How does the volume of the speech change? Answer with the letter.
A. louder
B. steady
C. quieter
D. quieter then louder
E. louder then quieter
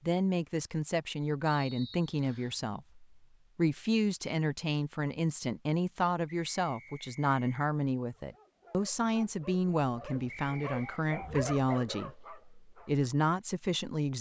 B.